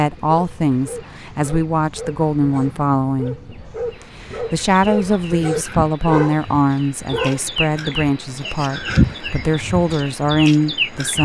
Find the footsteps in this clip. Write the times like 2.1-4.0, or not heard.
not heard.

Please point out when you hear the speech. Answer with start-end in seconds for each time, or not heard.
0.0-3.4, 4.3-11.1.